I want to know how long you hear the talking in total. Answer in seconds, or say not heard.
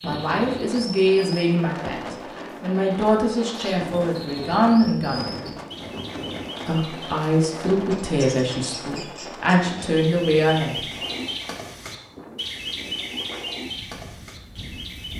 10 s.